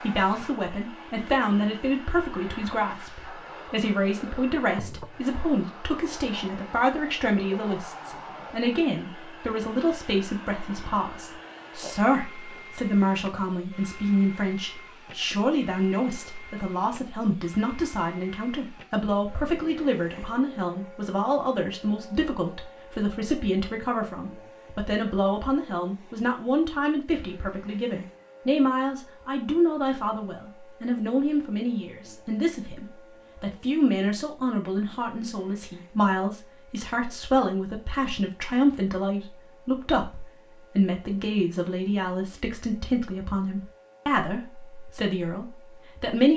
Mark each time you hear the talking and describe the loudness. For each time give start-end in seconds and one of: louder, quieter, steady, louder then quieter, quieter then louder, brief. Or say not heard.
0.0-46.3 steady.